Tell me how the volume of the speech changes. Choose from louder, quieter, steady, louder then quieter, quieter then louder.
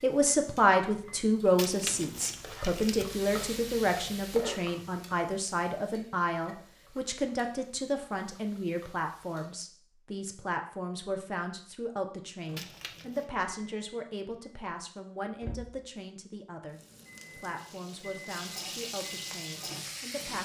quieter.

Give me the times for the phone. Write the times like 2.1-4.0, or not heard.
not heard.